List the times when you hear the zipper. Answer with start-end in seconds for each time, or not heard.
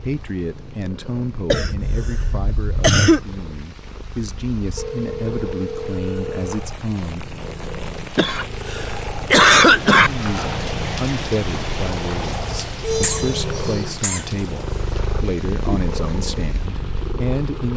not heard.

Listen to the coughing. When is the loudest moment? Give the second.
10 s.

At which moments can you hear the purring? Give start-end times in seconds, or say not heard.
0.0-17.7.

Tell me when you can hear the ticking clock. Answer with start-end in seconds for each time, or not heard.
not heard.